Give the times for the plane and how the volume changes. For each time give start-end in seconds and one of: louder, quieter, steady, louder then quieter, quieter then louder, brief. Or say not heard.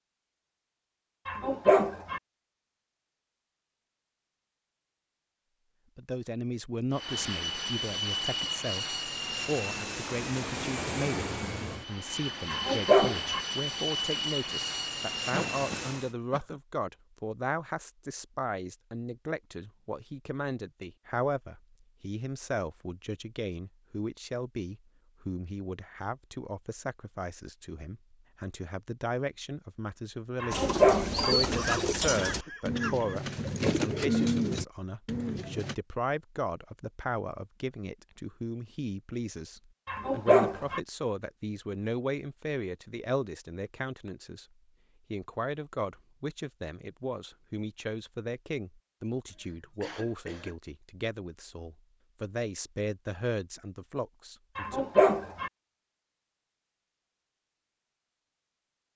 6.9-16.1 steady.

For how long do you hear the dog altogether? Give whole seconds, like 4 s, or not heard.
5 s.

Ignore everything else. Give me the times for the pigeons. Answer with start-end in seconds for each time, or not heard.
30.5-35.8.